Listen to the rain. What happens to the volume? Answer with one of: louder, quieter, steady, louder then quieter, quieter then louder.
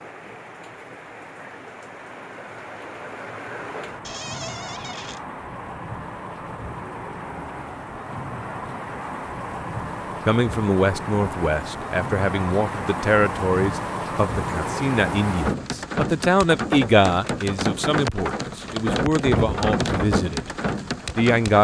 louder.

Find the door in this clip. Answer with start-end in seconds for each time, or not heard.
4.0-5.2.